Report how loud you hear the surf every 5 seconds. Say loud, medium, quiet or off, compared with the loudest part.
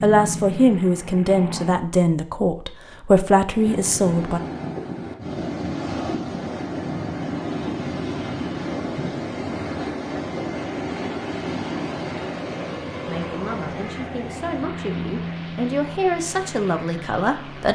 loud, loud, loud, quiet.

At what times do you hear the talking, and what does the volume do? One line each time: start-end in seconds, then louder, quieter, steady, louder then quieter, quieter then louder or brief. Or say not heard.
0.0-4.4 steady
13.1-17.7 louder.